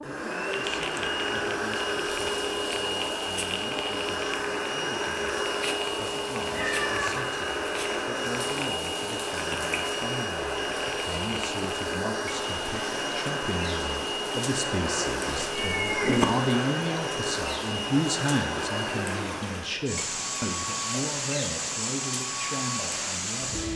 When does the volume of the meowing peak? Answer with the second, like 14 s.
16 s.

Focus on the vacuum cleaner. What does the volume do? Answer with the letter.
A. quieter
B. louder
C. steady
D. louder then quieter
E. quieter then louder
C.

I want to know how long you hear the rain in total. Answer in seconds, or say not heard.
24 s.